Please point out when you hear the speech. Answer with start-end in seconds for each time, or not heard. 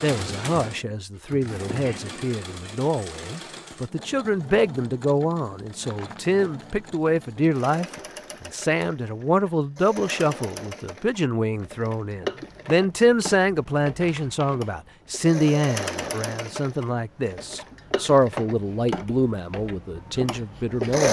0.0-21.0.